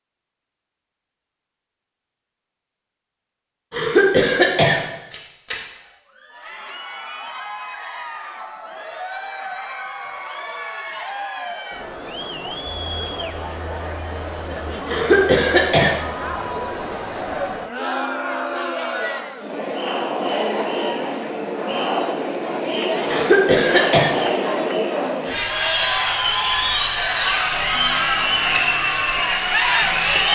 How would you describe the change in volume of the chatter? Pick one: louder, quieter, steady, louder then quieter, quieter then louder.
louder.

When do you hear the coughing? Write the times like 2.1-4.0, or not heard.
3.7-4.8, 14.8-15.9, 23.1-24.1.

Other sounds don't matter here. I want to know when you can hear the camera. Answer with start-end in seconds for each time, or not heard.
5.1-5.6, 28.1-28.6.